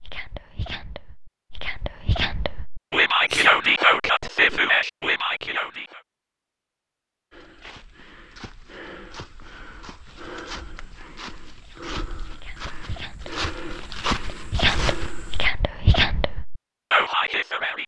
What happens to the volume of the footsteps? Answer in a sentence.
The loudness of the footsteps goes up.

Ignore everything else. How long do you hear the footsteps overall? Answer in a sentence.
You can hear the footsteps for 8 seconds altogether.